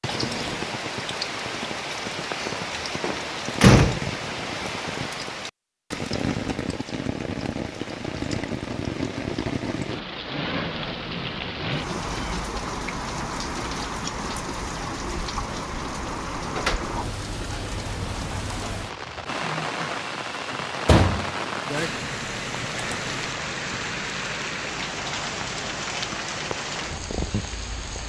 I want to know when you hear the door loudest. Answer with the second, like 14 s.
4 s.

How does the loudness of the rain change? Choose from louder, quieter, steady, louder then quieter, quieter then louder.
steady.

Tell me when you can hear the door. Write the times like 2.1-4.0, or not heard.
2.4-4.0, 16.1-17.1, 20.9-21.9.